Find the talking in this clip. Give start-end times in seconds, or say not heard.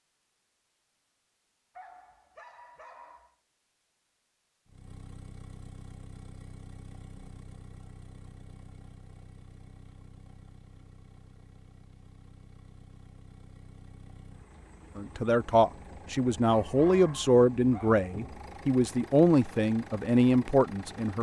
14.9-21.1.